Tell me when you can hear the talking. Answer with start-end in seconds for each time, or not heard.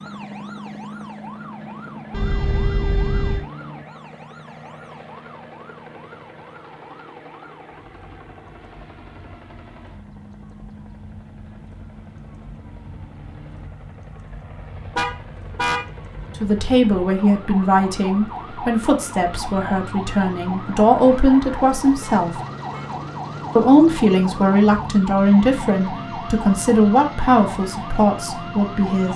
16.4-22.4, 23.6-29.1.